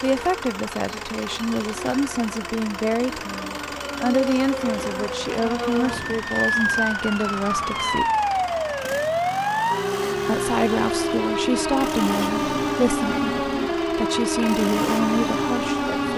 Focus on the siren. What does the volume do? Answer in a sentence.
The volume of the siren goes up.